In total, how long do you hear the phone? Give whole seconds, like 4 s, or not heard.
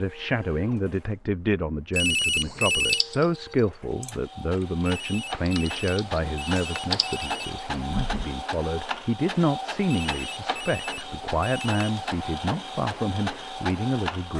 6 s.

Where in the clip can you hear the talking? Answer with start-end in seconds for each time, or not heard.
0.0-14.3.